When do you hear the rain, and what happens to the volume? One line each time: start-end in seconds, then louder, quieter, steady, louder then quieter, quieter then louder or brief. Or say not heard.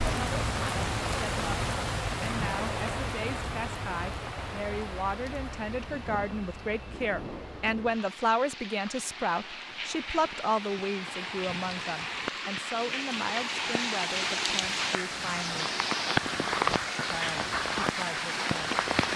0.0-19.1 quieter then louder.